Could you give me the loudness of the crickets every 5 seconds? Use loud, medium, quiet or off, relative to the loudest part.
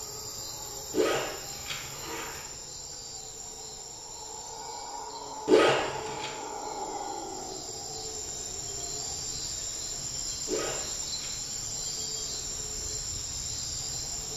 medium, loud, loud.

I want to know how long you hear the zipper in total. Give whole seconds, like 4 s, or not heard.
3 s.